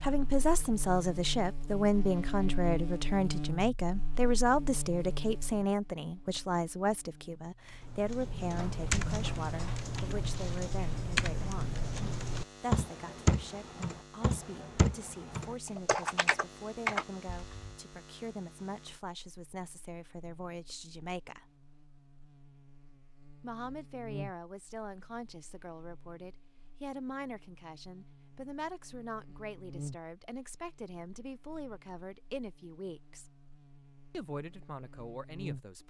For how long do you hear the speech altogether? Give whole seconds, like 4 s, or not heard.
32 s.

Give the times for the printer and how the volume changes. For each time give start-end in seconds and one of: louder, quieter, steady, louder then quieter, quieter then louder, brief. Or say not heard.
not heard.